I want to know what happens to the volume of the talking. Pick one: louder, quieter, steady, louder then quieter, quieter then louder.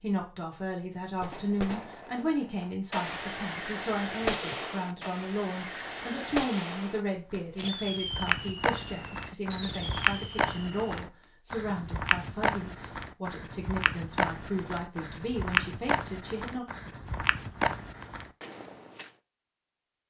steady.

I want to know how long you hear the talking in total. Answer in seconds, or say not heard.
17 s.